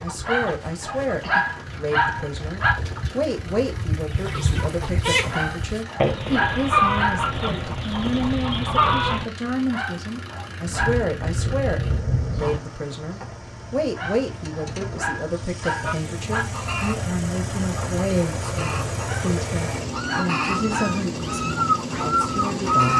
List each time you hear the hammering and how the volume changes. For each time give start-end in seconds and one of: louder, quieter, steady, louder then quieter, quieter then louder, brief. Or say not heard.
not heard.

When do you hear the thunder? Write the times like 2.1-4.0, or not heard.
10.7-12.6.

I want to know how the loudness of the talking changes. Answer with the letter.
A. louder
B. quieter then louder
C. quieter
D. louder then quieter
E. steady
E.